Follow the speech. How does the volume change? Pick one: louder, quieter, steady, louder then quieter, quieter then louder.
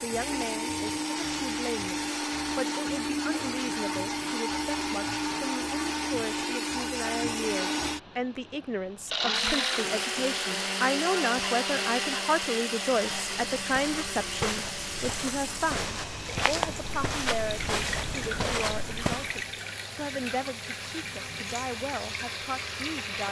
louder then quieter.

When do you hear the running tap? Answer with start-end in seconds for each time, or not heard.
9.3-23.2.